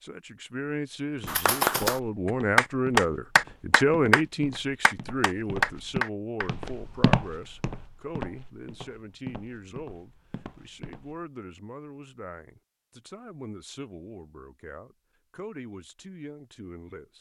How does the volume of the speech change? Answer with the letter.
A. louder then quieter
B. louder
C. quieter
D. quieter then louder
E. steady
C.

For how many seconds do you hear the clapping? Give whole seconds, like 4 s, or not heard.
5 s.